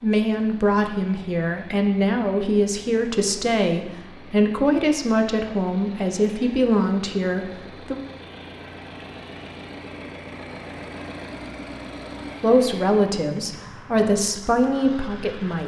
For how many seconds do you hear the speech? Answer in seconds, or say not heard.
11 s.